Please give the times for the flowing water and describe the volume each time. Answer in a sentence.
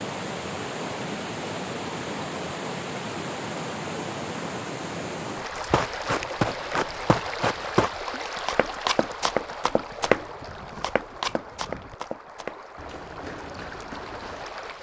The flowing water can be heard from 0.0 to 14.7 s, getting quieter.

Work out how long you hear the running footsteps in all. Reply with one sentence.
You can hear the running footsteps for 9 seconds altogether.